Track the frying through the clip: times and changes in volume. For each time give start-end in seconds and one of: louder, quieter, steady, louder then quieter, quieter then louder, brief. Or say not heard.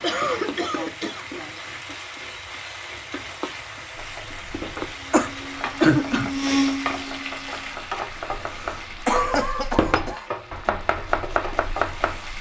0.0-12.3 steady.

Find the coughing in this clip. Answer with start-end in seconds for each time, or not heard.
0.0-1.7, 5.1-6.3, 8.4-10.3.